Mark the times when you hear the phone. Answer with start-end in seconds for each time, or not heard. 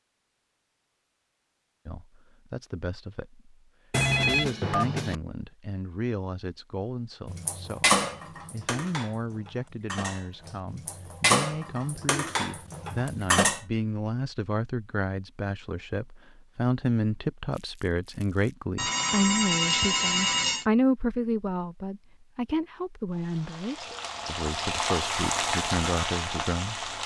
3.9-5.2, 18.8-20.6.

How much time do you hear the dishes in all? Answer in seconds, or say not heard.
6 s.